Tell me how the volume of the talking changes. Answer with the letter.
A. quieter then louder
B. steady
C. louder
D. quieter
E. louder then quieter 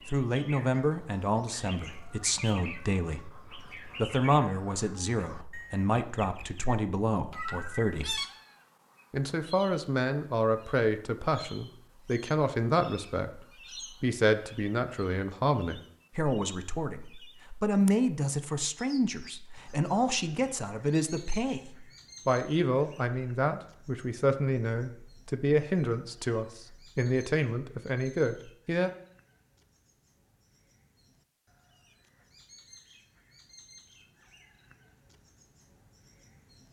B.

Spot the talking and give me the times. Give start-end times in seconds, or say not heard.
0.1-8.2, 9.1-13.4, 14.0-28.9.